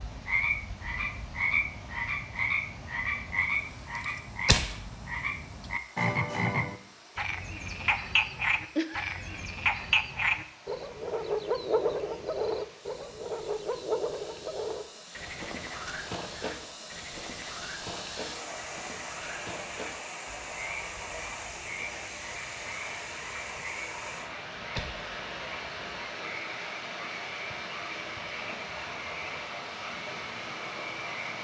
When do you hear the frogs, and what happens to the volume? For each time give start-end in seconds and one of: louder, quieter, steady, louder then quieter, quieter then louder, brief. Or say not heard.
0.0-31.3 quieter.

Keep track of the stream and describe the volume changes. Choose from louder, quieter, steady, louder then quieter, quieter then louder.
louder.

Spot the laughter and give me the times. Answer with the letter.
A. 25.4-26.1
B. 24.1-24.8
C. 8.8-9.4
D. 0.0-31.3
C.